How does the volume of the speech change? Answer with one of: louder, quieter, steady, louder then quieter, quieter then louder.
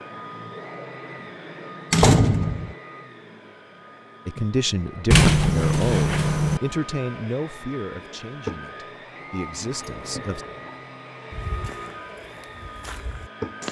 quieter then louder.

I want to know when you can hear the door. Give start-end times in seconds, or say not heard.
1.9-2.8, 5.1-6.6, 9.6-10.7.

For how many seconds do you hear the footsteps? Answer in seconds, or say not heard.
2 s.